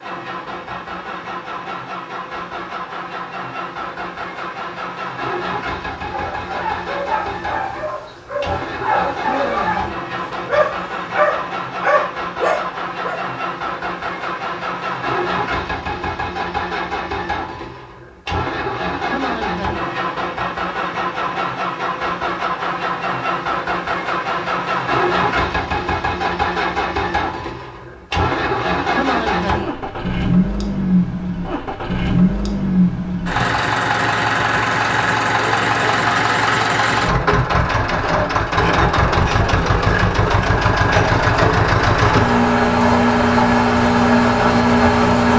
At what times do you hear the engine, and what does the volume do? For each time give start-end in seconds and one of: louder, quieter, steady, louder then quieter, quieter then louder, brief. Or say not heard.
0.0-45.3 louder.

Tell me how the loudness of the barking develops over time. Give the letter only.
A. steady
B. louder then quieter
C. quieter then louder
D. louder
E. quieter
D.